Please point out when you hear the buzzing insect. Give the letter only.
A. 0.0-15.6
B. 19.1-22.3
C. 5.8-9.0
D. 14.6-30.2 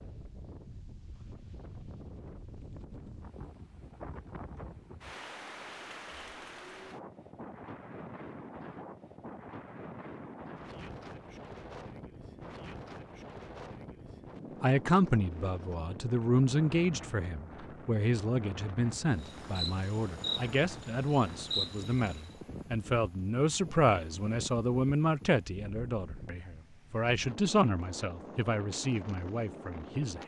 B.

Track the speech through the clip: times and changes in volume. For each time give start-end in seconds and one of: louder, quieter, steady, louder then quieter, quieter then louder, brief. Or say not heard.
14.6-30.2 steady.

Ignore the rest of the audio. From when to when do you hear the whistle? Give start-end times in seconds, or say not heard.
not heard.